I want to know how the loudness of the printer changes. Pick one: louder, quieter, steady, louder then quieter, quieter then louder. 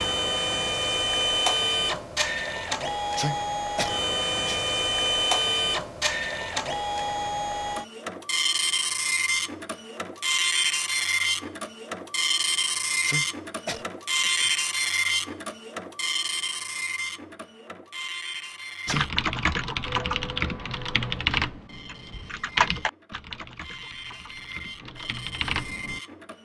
quieter.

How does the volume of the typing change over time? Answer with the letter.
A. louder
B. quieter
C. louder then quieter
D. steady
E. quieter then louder
E.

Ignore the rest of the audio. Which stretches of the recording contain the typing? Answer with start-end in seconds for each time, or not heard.
18.9-26.0.